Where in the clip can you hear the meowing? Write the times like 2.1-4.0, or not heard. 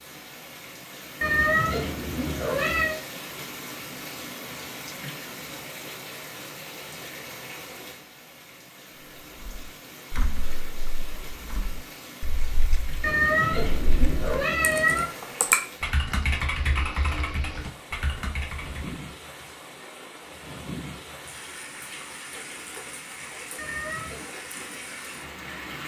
1.2-3.0, 13.0-15.1, 23.6-24.2.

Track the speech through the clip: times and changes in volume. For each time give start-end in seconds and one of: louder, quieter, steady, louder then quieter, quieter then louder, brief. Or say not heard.
not heard.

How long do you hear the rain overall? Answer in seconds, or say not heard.
26 s.